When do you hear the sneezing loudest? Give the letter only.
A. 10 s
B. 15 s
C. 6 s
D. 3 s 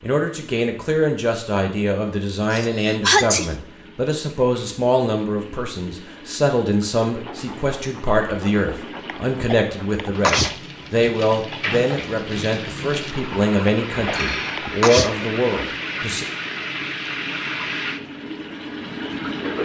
D.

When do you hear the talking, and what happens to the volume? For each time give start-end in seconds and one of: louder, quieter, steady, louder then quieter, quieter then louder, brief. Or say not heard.
0.0-16.2 steady.